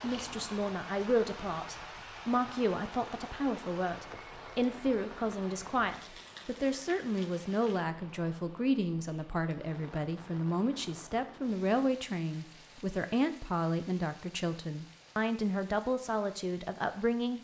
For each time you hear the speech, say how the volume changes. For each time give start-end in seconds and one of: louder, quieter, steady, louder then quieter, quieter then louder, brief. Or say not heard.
0.0-17.3 steady.